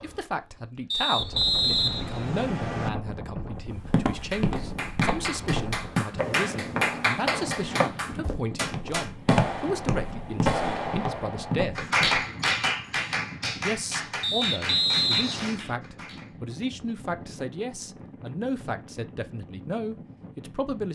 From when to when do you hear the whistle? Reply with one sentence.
The whistle can be heard from 0.9 to 2.9 s and from 14.2 to 15.5 s.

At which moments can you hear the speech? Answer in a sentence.
The speech can be heard from 0.0 to 11.9 s and from 13.6 to 20.9 s.